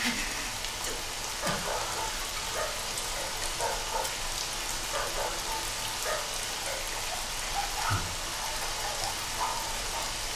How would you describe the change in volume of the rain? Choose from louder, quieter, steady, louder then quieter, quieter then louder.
steady.